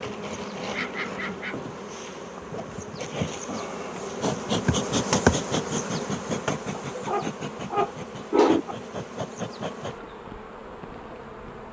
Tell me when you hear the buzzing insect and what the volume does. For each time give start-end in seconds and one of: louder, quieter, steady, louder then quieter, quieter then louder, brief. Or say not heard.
0.0-11.6 louder then quieter.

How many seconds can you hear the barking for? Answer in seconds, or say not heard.
3 s.